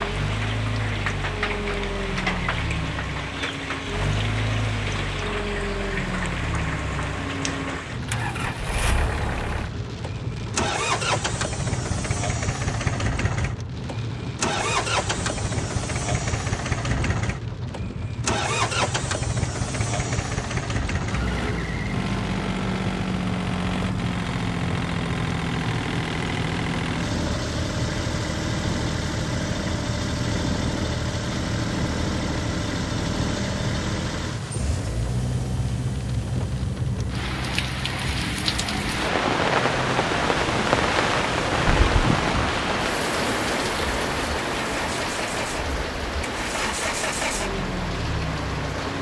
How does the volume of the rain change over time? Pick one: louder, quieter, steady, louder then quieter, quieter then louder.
louder.